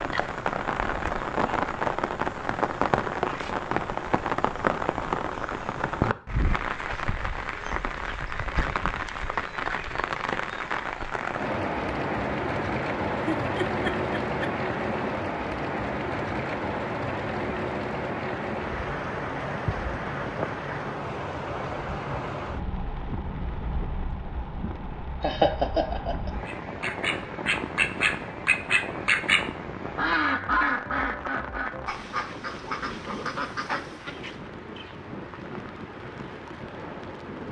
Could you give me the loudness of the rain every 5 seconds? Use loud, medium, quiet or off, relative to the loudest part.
loud, loud, loud, loud, medium, medium, medium, medium.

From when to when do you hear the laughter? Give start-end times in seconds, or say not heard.
13.2-14.5, 25.2-26.3.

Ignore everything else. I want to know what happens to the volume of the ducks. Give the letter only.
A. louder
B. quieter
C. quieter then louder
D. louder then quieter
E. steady
B.